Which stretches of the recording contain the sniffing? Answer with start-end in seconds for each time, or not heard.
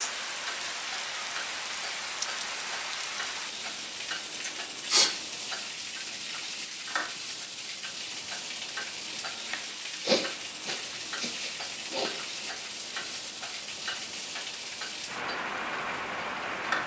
4.3-5.1, 10.1-12.1.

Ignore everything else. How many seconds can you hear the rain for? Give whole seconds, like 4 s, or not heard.
17 s.